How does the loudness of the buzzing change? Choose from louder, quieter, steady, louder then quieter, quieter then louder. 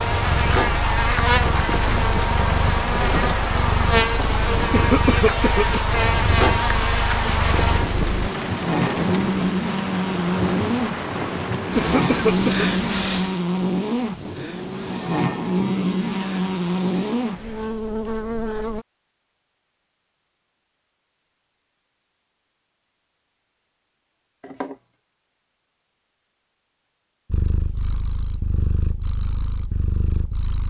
steady.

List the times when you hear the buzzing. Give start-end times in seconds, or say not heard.
0.0-18.9.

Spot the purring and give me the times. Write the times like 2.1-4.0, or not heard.
0.1-8.3, 27.3-30.6.